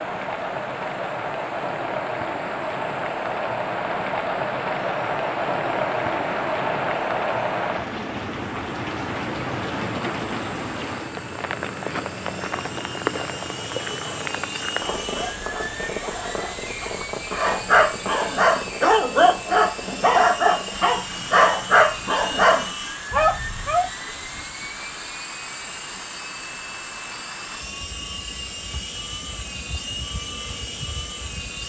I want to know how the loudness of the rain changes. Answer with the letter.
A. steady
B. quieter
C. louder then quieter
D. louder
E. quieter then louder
B.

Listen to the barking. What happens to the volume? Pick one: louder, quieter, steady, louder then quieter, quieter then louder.
louder.